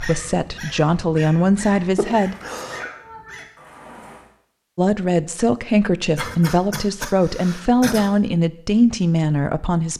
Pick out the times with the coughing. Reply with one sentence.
The coughing can be heard from 1.9 to 2.9 s and from 6.2 to 8.2 s.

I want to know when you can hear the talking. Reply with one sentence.
The talking can be heard from 0.0 to 2.4 s and from 4.8 to 9.9 s.